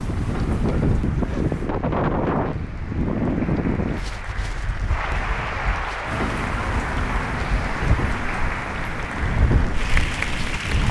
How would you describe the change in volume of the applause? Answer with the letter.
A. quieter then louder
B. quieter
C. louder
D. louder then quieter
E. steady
C.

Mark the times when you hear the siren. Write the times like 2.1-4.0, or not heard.
0.0-1.7, 6.0-10.8.